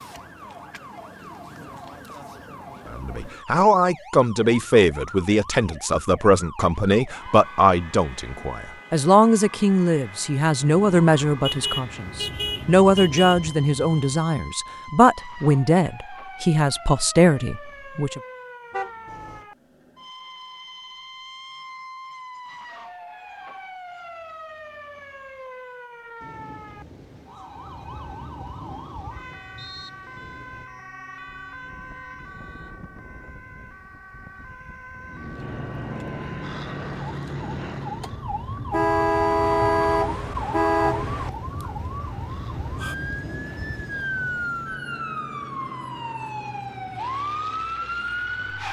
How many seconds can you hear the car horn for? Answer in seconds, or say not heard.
6 s.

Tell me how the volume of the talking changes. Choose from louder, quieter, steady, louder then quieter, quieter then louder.
steady.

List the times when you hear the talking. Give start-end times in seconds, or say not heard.
2.9-18.2.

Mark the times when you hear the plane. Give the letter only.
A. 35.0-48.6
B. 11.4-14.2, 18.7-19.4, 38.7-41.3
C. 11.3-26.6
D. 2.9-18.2
A.